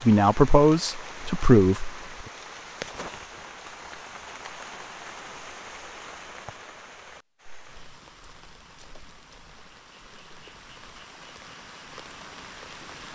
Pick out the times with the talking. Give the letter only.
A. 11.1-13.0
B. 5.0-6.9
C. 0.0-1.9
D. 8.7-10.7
C.